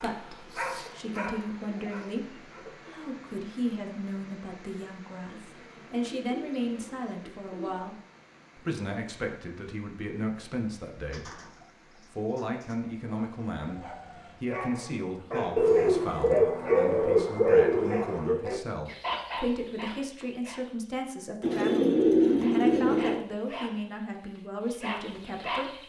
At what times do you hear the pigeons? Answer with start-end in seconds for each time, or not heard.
0.5-3.0, 5.3-7.8, 11.1-12.8, 15.6-18.4, 21.4-23.2.